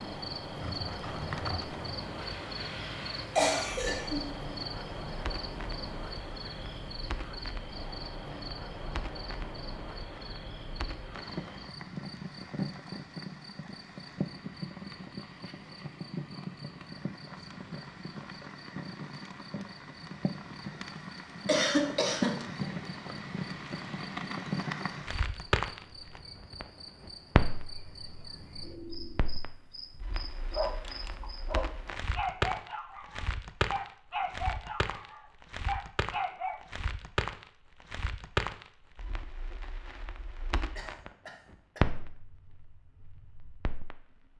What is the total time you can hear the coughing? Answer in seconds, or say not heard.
3 s.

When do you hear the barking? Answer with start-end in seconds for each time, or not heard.
30.4-36.6.